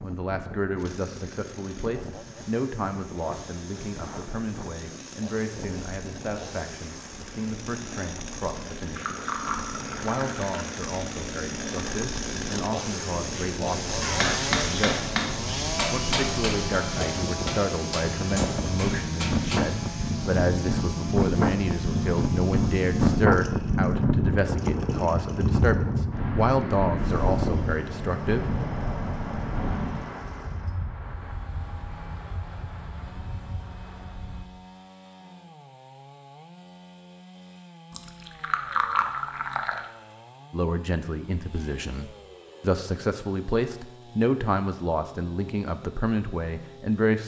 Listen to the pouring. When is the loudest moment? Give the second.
39 s.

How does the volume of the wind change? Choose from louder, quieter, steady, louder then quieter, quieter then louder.
louder then quieter.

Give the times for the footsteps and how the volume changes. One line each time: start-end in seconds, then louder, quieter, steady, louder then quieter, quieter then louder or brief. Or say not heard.
not heard.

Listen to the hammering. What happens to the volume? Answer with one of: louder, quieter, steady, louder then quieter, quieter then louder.
quieter.